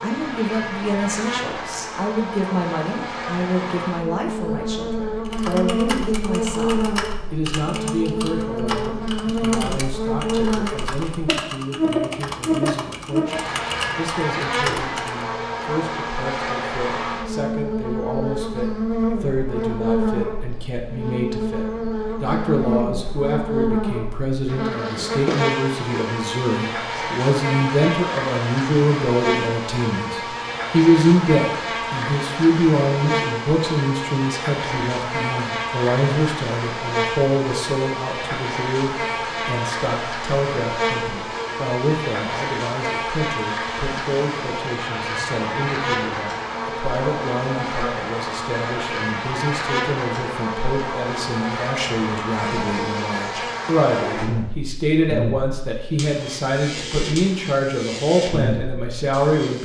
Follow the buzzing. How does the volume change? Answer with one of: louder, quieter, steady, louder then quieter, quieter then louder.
steady.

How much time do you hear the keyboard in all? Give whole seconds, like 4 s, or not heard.
10 s.